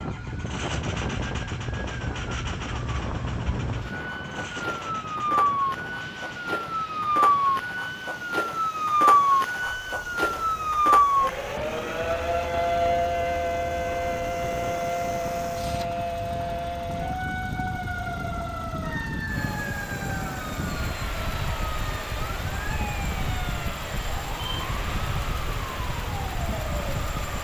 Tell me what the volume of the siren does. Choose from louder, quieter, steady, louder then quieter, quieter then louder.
louder then quieter.